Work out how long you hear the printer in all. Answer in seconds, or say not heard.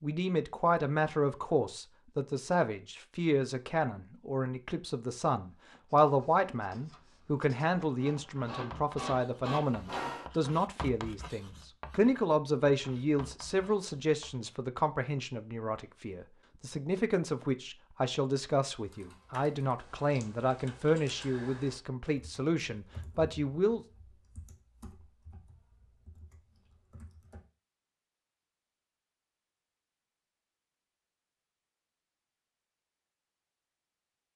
2 s.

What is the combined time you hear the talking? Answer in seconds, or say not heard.
24 s.